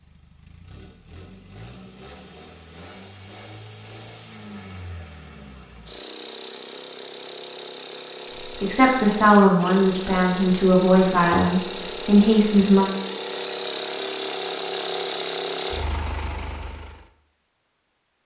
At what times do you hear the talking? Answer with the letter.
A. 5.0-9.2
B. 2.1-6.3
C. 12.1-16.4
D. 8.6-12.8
D.